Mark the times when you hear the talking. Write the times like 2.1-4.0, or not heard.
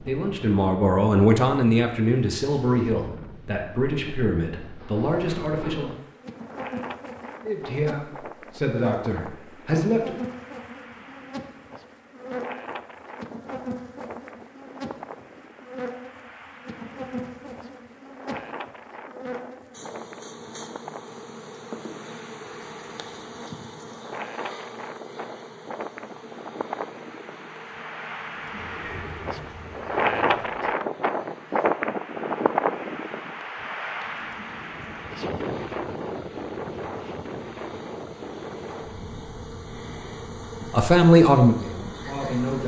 0.0-6.0, 7.5-10.2, 40.7-42.6.